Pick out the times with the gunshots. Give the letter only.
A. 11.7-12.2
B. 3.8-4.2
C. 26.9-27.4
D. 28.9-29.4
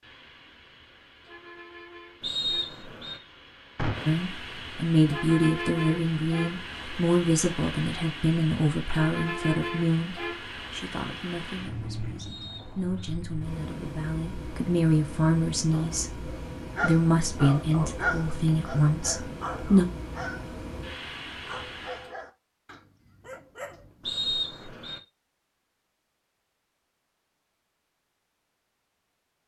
B.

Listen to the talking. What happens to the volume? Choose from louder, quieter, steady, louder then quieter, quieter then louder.
quieter then louder.